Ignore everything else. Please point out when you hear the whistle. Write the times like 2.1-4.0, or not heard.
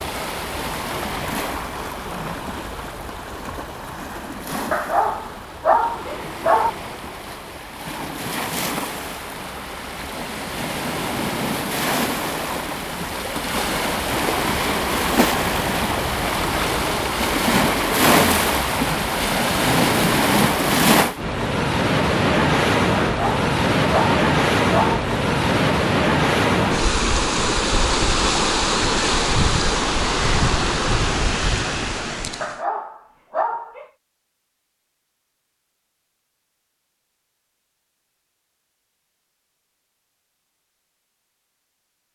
not heard.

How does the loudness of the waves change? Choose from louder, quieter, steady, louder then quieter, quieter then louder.
louder.